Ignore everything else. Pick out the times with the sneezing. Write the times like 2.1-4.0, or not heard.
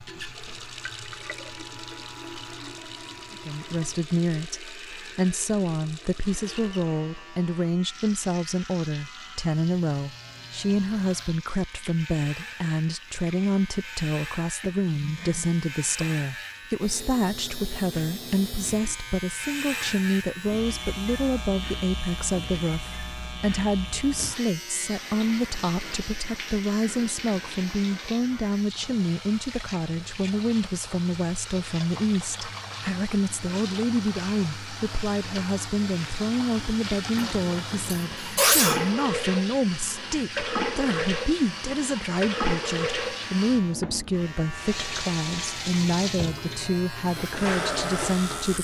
14.6-16.2, 37.1-39.0.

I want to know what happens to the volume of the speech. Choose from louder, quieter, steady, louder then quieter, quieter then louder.
steady.